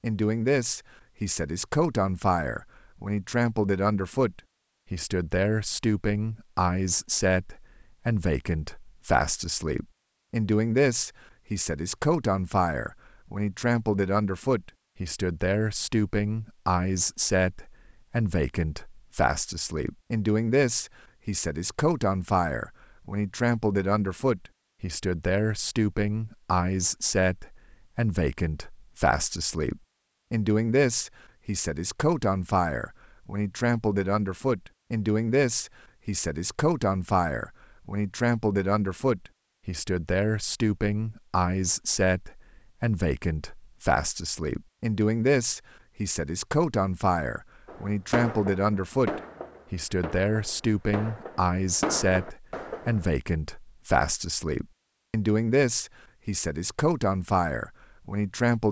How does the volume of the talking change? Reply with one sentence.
The loudness of the talking stays about the same.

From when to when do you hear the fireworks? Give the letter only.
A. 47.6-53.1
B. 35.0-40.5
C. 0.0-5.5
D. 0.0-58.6
A.